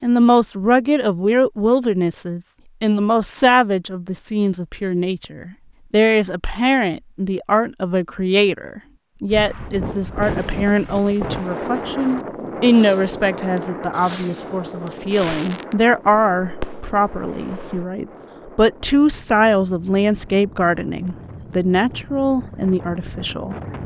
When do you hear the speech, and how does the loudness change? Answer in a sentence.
You can hear the speech from 0.0 to 23.6 s, at a steady volume.